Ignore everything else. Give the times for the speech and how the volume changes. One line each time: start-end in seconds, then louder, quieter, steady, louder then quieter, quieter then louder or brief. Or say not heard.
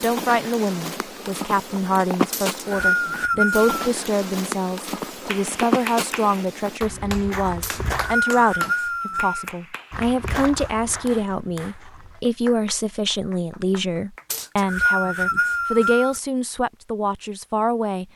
0.0-18.1 steady.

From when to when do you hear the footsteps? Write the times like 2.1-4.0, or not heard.
0.0-8.2, 9.9-12.2.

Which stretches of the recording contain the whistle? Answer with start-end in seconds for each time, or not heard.
2.3-3.9, 7.6-9.5, 14.3-16.2.